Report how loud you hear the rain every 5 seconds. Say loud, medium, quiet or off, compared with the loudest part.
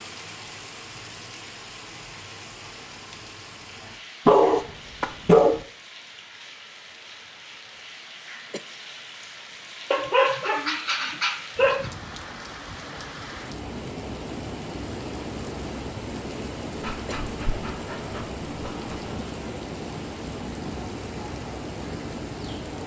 medium, medium, loud, loud, loud.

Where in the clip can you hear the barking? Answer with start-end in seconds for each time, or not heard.
4.2-5.6, 9.9-11.9, 16.8-19.1.